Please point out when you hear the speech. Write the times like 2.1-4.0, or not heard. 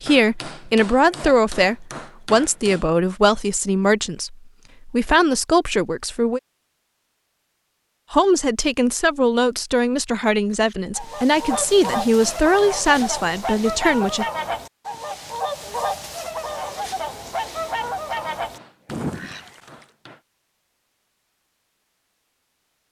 0.0-6.4, 8.1-14.2.